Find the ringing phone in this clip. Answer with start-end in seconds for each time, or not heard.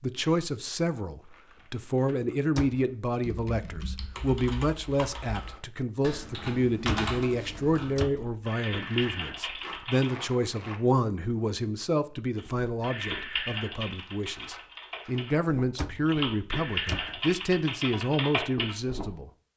not heard.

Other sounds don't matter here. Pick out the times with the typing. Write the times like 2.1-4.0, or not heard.
3.2-10.1, 12.3-19.1.